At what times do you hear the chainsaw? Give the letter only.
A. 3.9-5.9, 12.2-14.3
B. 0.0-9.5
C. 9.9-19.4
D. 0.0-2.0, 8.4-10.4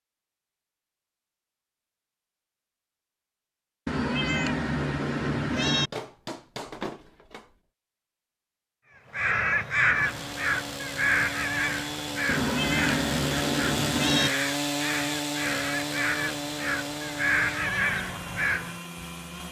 C.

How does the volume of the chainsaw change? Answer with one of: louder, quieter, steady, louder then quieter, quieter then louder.
louder then quieter.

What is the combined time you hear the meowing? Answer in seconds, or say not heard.
4 s.